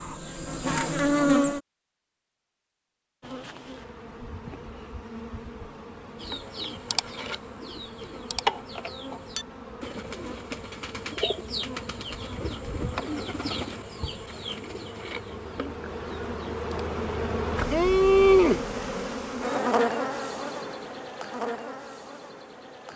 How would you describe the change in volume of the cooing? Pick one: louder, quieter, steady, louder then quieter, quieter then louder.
louder then quieter.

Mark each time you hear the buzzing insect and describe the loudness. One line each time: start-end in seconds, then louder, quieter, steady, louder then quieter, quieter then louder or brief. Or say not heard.
0.0-1.6 brief
3.2-22.9 louder then quieter.